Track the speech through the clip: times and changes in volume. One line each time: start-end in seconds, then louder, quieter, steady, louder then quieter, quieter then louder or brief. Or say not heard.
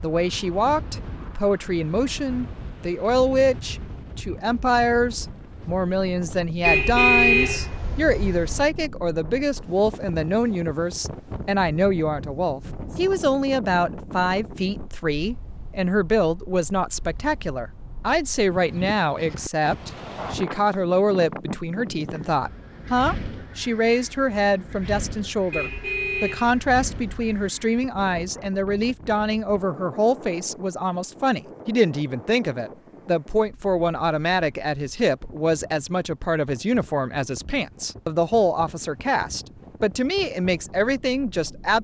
0.0-41.8 steady.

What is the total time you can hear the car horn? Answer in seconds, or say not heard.
4 s.